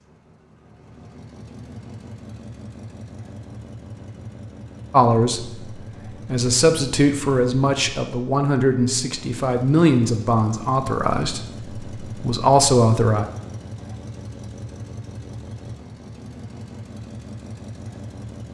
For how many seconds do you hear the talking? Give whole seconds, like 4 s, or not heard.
8 s.